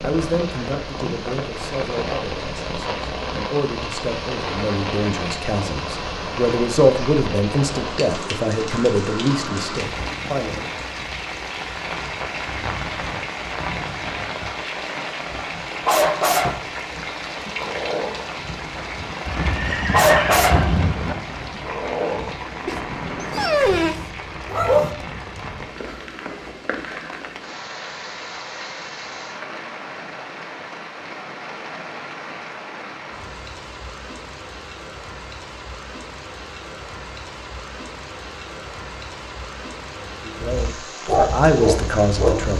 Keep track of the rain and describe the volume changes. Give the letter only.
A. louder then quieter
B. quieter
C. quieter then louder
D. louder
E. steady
B.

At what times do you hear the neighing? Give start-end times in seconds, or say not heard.
19.2-21.1.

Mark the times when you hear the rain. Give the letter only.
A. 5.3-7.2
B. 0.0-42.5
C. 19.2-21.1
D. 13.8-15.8
B.